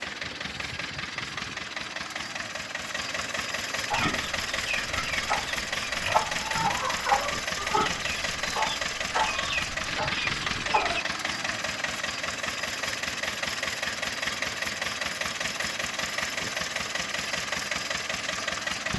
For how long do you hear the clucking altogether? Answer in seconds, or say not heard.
7 s.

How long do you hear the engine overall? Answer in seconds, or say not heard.
19 s.